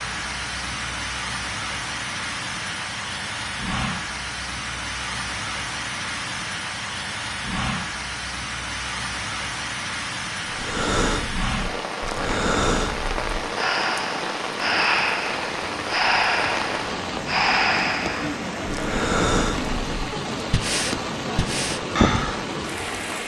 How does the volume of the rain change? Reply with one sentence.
The volume of the rain stays about the same.